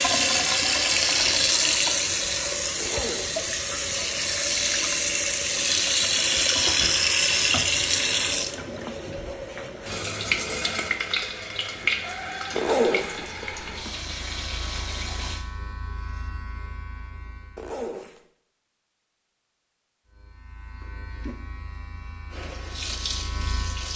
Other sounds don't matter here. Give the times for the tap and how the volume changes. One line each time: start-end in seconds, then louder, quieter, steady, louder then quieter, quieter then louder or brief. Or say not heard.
0.0-15.4 quieter
22.3-23.9 brief.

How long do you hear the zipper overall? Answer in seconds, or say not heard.
3 s.